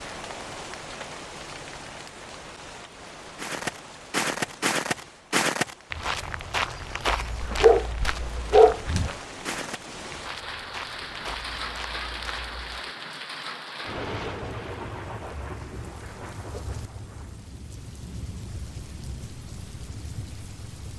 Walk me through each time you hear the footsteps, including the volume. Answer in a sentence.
You can hear the footsteps from 3.4 to 12.8 s, getting quieter.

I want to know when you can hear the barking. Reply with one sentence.
You can hear the barking from 7.4 to 9.0 s.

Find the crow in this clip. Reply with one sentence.
The crow can't be heard in this clip.